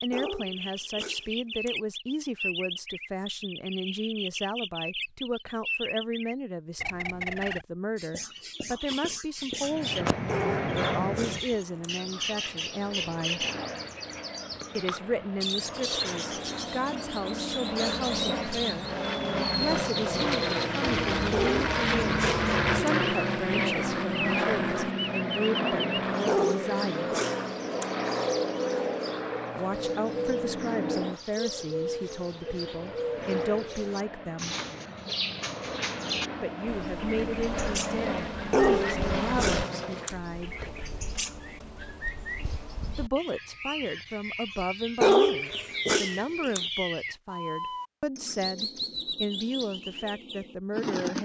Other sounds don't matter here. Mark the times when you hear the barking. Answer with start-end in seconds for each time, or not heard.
0.1-1.7, 10.2-11.9, 21.3-22.9, 26.2-27.9, 38.5-40.1, 45.0-46.6.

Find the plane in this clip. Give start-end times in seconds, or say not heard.
9.6-40.1.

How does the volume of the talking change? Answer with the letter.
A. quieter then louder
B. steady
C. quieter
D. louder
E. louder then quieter
B.